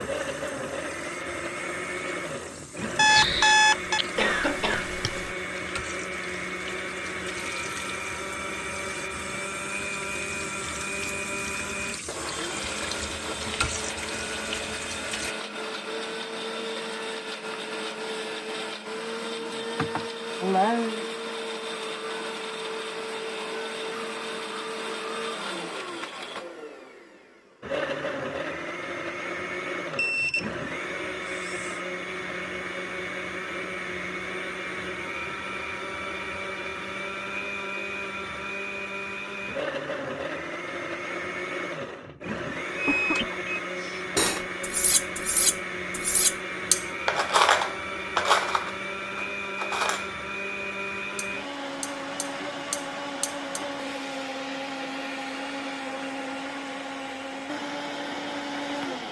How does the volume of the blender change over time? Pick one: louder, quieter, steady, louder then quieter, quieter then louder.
steady.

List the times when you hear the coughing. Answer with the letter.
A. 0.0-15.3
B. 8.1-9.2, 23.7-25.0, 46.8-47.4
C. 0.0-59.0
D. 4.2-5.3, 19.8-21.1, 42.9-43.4
D.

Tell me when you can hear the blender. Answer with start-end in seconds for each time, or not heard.
0.0-59.0.